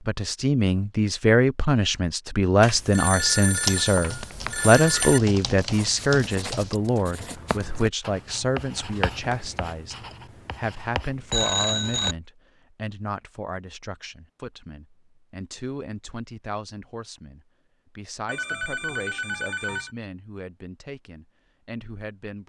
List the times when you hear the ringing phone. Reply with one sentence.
The ringing phone can be heard from 2.6 to 5.2 s, from 11.3 to 12.2 s and from 18.2 to 19.9 s.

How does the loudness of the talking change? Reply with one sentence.
The loudness of the talking goes down.